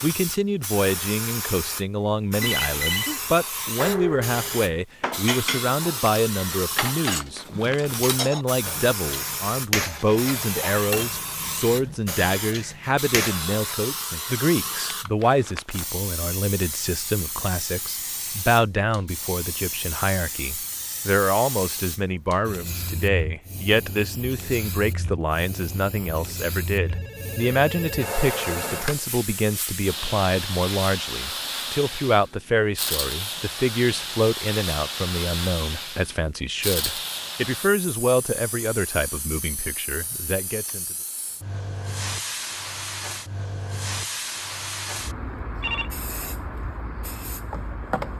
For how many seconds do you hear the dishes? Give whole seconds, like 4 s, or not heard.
10 s.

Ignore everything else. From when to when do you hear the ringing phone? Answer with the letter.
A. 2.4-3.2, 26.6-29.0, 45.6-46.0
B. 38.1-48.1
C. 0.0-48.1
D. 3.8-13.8
A.